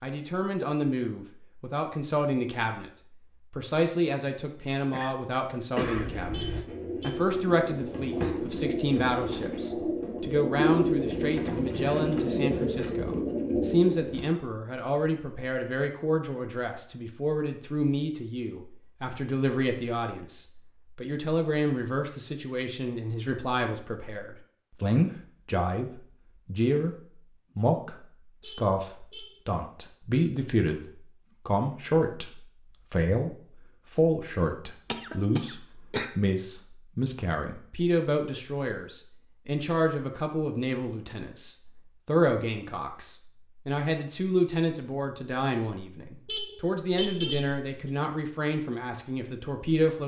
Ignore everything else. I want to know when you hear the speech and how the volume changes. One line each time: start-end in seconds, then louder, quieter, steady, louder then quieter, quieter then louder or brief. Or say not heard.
0.0-2.9 brief
3.5-26.9 steady
27.6-50.0 steady.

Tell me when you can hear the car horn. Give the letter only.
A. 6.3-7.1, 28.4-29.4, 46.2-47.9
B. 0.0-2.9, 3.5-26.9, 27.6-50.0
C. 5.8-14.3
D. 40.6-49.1
A.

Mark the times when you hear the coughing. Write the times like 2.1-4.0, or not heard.
4.9-6.2, 34.9-36.1.